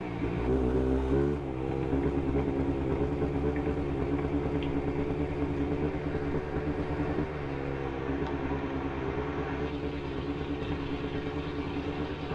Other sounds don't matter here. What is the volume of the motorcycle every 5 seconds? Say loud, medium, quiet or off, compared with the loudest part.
loud, loud, medium.